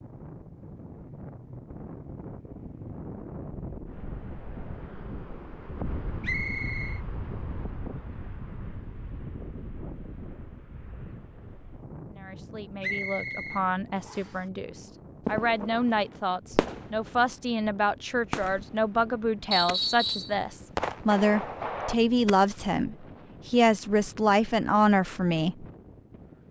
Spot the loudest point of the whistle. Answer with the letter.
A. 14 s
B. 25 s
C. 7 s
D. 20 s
D.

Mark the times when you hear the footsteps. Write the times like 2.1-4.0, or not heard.
not heard.